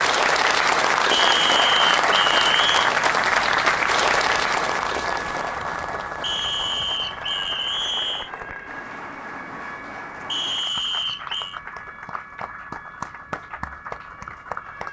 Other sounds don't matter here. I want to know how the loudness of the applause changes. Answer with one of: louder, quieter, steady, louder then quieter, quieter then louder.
quieter.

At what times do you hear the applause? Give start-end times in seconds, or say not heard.
0.0-14.8.